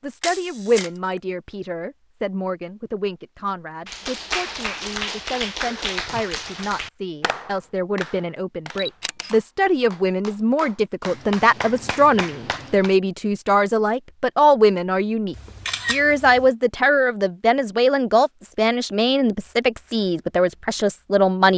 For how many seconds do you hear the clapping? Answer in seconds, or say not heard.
9 s.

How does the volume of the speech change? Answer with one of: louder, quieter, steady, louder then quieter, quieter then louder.
louder.